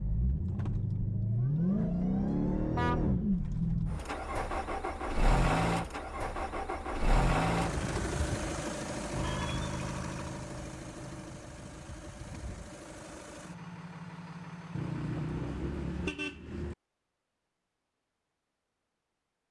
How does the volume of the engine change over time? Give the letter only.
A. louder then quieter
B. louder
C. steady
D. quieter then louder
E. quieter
E.